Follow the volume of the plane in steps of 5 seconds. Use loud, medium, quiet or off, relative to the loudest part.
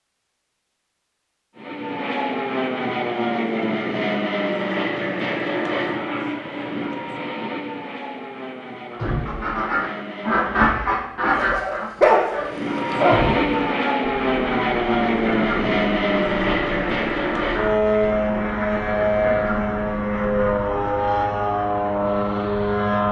loud, medium, loud, loud, loud.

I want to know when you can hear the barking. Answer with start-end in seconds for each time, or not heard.
11.3-13.3.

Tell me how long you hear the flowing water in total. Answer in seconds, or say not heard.
not heard.